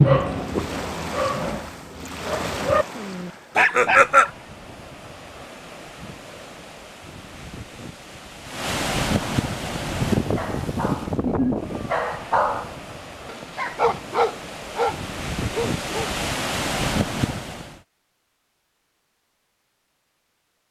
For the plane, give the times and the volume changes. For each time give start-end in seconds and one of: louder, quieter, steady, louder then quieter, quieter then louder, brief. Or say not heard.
not heard.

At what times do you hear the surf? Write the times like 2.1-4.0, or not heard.
0.1-17.8.